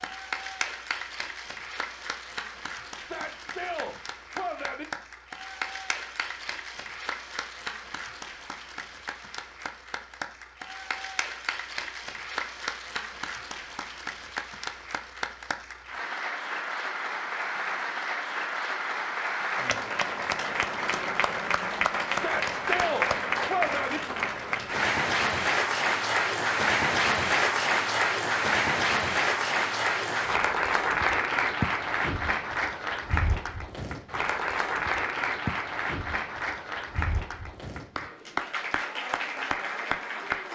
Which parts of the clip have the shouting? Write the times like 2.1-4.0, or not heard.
3.0-4.8, 22.1-24.0.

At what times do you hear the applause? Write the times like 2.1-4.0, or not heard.
0.0-40.5.